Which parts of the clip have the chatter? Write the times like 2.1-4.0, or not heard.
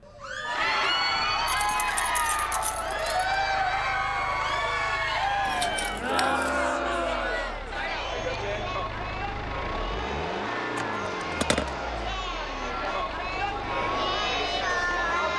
0.1-15.3.